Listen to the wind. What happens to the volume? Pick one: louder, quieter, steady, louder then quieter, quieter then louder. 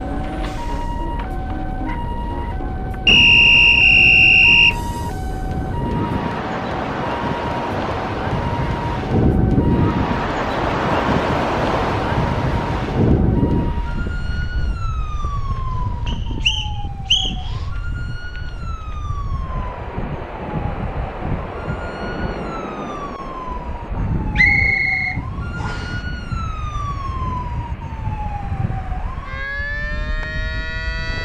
louder then quieter.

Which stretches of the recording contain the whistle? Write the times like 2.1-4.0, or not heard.
3.0-4.8, 16.1-17.4, 24.4-25.9.